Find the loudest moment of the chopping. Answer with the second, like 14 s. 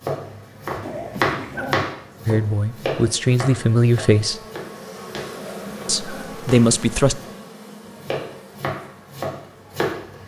1 s.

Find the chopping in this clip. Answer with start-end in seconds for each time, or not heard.
0.0-7.3, 8.0-10.2.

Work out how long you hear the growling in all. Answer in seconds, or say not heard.
2 s.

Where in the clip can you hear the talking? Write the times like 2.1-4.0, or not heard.
2.2-4.4, 5.8-7.2.